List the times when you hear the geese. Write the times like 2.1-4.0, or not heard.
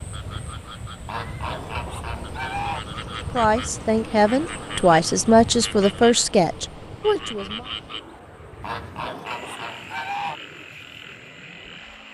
1.1-2.8, 8.6-10.3.